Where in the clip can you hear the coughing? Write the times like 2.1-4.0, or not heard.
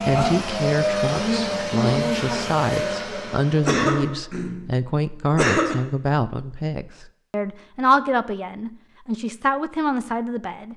3.6-4.7, 5.3-5.8.